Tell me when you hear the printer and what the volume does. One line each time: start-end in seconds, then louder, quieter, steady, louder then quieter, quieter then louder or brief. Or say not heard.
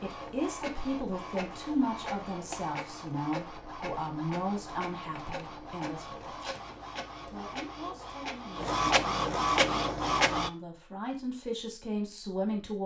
0.0-10.5 louder.